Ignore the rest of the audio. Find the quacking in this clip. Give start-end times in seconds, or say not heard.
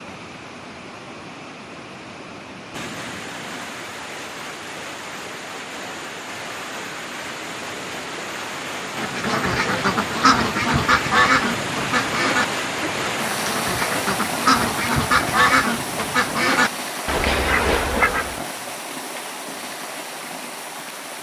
8.9-18.4.